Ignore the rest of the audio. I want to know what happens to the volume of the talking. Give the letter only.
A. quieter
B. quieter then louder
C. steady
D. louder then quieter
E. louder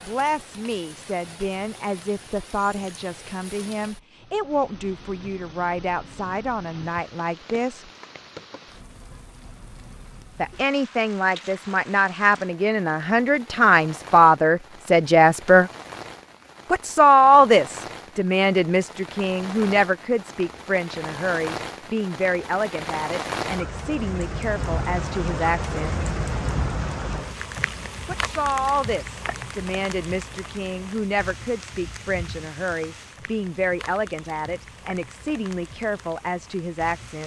D.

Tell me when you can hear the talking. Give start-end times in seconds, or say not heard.
0.1-7.9, 10.3-15.7, 16.7-25.9, 28.1-37.2.